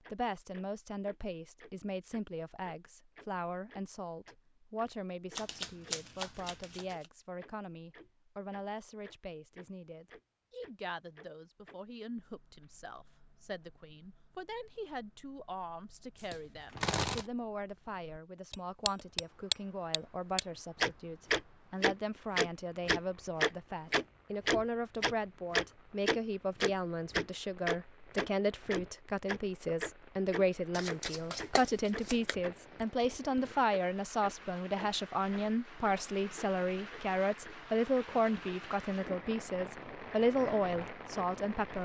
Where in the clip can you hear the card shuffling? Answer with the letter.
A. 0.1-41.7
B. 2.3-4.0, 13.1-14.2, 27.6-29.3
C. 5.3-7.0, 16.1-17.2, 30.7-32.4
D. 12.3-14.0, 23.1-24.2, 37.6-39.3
C.